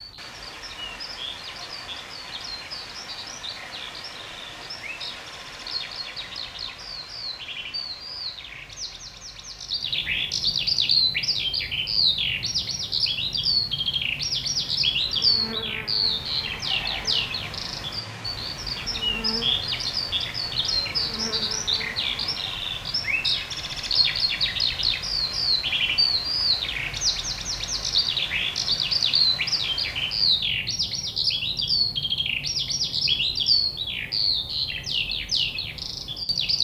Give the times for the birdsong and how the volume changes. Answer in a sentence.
You can hear the birdsong from 0.0 to 36.5 s, getting louder.